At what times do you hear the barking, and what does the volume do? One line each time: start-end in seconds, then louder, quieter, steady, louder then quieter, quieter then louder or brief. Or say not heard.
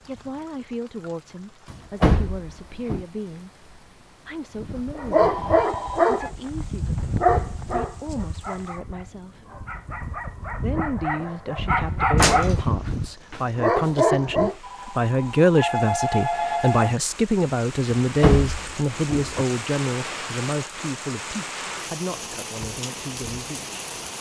4.5-14.6 quieter then louder.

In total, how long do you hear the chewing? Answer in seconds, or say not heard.
not heard.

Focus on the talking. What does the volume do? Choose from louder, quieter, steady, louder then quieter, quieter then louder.
louder then quieter.